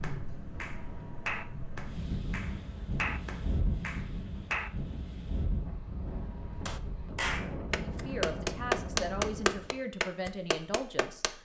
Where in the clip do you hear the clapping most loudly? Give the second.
9 s.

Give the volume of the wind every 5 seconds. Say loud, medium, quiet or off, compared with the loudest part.
loud, loud, off.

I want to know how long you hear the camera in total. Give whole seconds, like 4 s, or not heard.
2 s.